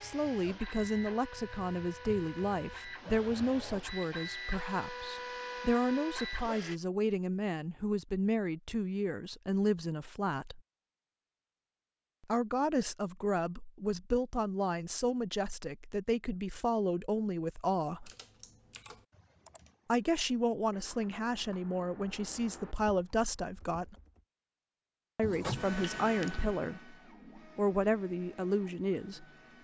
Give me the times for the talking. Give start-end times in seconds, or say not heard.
0.0-10.6, 12.2-18.1, 19.9-23.9, 25.1-26.9, 27.6-29.2.